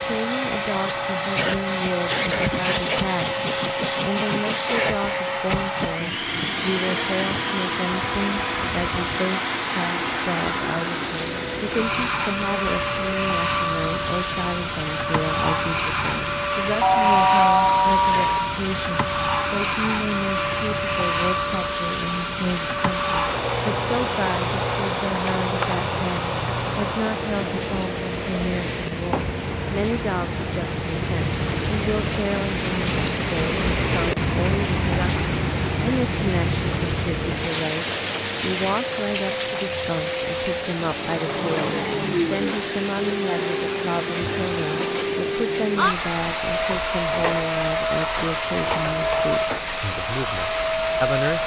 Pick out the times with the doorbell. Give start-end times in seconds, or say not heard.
16.8-18.6.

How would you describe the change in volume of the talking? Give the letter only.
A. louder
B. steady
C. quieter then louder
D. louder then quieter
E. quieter
B.